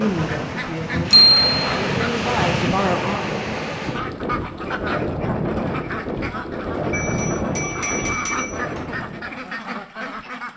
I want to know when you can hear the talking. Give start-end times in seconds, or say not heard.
0.0-3.4.